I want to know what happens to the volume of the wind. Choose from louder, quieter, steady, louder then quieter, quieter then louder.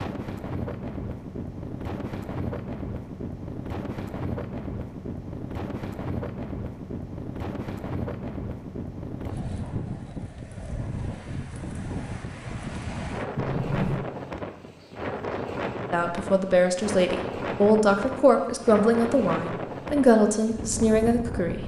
steady.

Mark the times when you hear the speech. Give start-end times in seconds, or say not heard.
15.9-21.6.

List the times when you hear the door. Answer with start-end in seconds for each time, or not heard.
13.3-14.1.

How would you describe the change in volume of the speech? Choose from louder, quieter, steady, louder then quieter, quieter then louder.
steady.